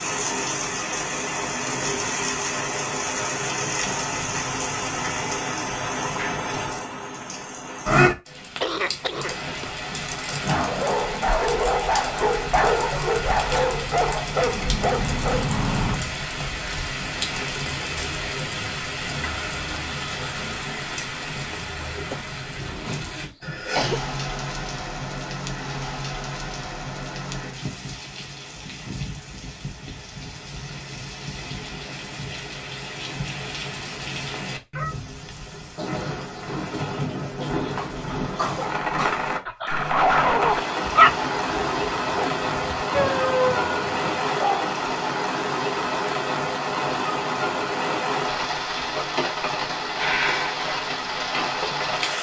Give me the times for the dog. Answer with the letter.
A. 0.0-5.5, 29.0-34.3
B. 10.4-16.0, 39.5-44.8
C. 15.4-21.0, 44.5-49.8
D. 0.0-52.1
B.